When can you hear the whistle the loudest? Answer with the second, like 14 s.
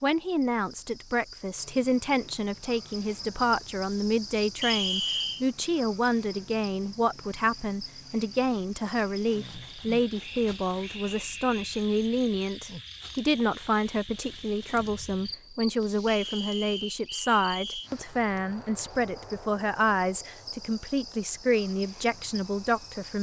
5 s.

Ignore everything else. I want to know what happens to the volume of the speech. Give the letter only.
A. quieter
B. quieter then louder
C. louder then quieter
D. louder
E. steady
E.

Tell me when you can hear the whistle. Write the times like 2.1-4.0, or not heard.
4.6-5.5, 10.2-11.7, 16.1-17.9.